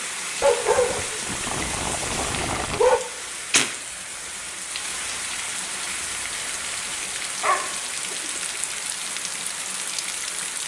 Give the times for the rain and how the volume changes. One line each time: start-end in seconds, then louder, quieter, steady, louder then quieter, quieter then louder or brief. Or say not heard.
0.0-10.6 steady.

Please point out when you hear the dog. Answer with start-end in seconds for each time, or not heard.
0.4-3.0, 7.4-8.2.